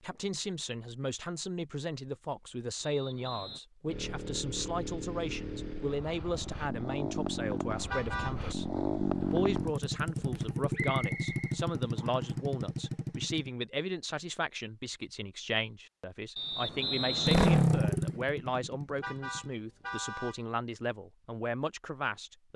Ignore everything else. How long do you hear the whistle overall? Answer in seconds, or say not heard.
4 s.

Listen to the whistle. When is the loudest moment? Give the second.
17 s.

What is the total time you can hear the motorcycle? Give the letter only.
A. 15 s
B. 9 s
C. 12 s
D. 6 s
C.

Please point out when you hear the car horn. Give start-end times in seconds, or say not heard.
7.9-8.3, 19.0-20.4.